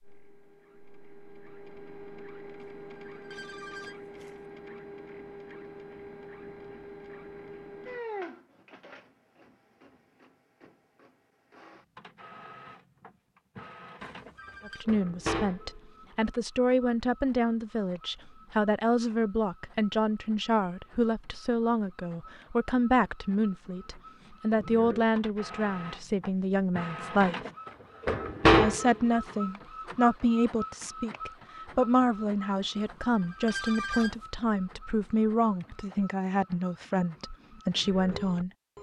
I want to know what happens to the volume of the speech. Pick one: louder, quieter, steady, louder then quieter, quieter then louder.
steady.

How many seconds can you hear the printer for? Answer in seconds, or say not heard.
39 s.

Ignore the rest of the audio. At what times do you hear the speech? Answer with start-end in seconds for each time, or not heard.
14.7-27.4, 28.6-38.5.